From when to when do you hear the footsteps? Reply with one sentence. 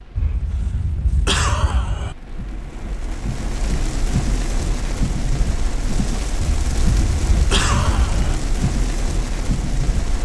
You can't hear the footsteps here.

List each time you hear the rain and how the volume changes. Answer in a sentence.
You can hear the rain from 0.0 to 10.2 s, getting louder.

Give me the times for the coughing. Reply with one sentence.
You can hear the coughing from 0.1 to 2.1 s and from 6.5 to 8.4 s.